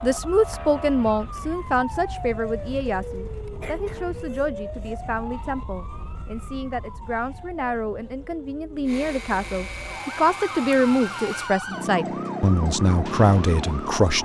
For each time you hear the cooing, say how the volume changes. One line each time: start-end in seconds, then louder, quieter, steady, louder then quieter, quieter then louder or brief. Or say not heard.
not heard.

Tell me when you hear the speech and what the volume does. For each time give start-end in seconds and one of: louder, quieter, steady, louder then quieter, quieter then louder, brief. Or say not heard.
0.0-14.2 quieter then louder.